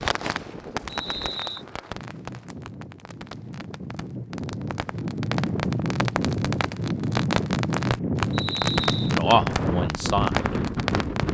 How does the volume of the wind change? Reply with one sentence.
The loudness of the wind goes up.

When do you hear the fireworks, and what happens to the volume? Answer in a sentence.
You can hear the fireworks from 0.0 to 11.2 s, getting quieter then louder.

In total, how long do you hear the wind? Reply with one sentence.
The wind can be heard for 11 seconds in total.